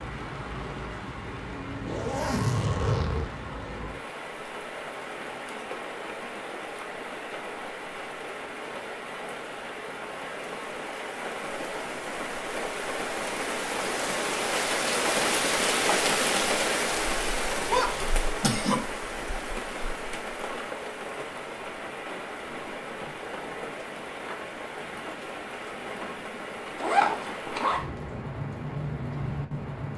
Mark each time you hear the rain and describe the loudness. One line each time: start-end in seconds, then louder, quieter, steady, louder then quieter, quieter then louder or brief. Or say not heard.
0.0-29.9 louder then quieter.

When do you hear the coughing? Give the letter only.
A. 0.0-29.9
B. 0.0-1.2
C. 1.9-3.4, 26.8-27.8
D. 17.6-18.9
D.